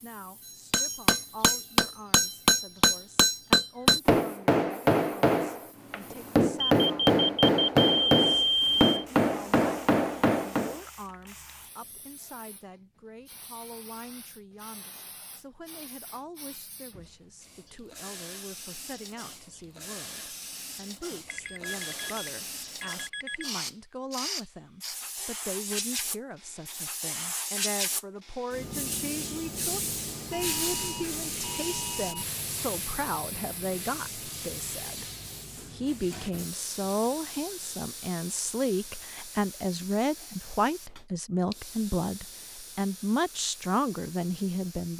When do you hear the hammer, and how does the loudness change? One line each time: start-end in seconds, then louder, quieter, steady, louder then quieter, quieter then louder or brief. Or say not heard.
0.7-10.8 steady.